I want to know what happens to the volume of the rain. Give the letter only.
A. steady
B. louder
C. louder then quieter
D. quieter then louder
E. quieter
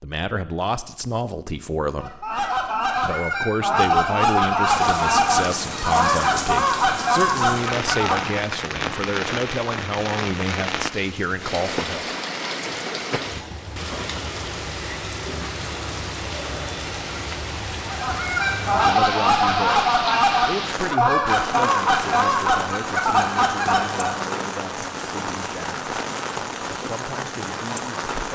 A.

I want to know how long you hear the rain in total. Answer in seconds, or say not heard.
24 s.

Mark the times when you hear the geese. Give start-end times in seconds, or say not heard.
1.9-8.4, 17.9-24.1.